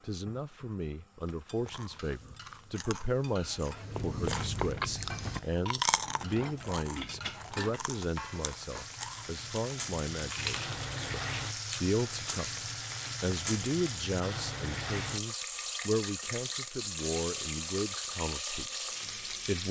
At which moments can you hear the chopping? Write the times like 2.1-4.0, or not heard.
not heard.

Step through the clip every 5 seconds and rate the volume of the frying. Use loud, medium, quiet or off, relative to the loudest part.
quiet, medium, loud, loud.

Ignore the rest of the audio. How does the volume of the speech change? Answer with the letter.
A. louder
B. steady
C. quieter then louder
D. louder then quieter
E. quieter
B.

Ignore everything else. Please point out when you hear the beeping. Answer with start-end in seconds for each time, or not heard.
not heard.